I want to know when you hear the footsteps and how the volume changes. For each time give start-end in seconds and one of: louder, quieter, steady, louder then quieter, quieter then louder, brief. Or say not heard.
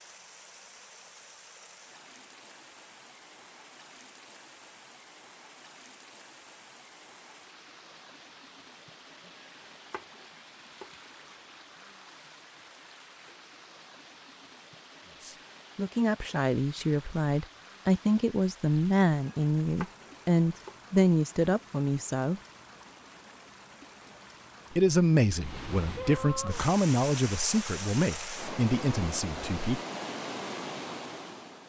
not heard.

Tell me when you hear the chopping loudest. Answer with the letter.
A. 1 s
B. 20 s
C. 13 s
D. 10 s
B.